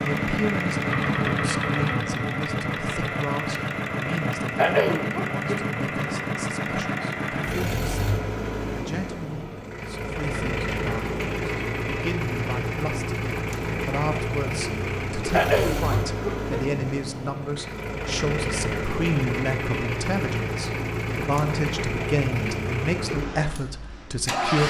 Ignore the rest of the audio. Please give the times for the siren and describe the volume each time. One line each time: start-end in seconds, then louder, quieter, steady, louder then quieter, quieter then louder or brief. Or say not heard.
not heard.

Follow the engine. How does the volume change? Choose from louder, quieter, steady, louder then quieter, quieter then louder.
steady.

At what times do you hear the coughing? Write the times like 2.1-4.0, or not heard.
4.5-5.6, 15.3-16.6.